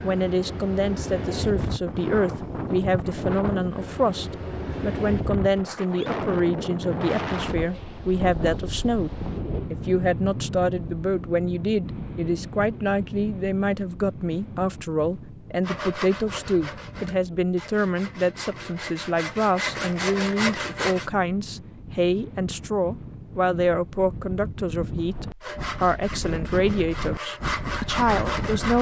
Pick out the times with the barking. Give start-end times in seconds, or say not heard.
not heard.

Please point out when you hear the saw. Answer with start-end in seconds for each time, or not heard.
15.6-21.1, 25.4-28.7.